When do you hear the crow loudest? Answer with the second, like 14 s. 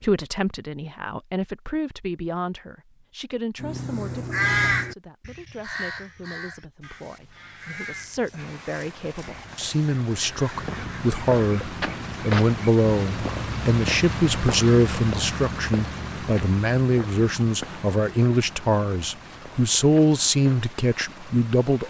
5 s.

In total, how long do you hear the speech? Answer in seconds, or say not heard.
22 s.